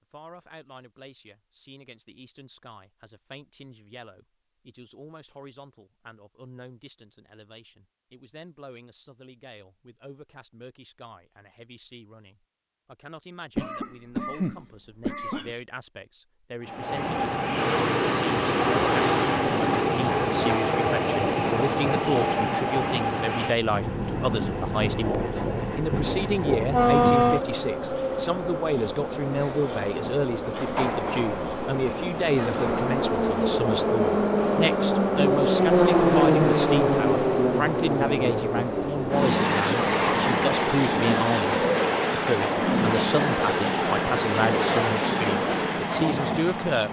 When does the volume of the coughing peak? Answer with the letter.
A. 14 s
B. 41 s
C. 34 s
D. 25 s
A.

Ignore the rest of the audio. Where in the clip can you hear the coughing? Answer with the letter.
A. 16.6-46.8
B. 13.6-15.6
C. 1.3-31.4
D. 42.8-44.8
B.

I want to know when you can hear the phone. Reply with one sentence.
The phone can't be heard in this clip.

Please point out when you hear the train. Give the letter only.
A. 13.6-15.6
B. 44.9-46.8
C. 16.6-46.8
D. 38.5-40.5
C.